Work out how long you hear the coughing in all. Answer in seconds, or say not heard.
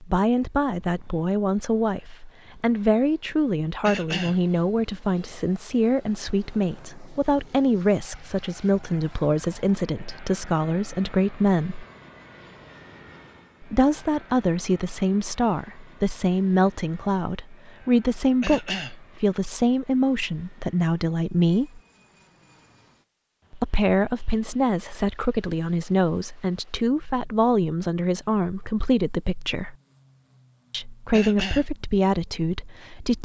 2 s.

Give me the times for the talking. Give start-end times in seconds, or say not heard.
0.0-11.8, 13.6-21.8, 23.5-29.8, 30.7-33.2.